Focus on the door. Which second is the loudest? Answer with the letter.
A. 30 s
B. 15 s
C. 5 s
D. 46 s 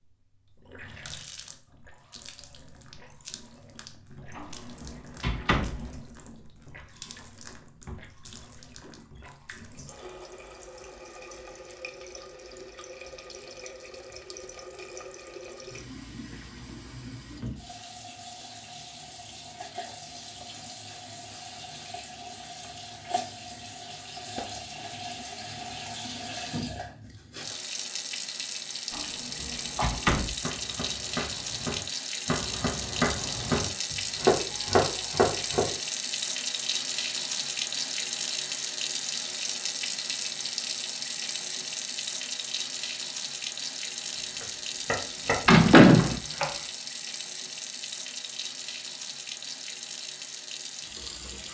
D.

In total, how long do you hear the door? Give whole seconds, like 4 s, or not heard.
4 s.